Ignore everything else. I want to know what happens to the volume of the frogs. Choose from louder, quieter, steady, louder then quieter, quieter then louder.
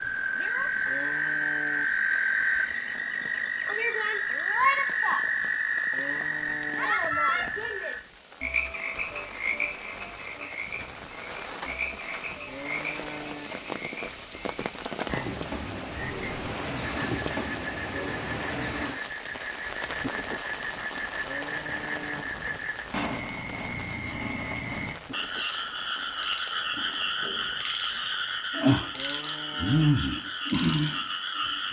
quieter then louder.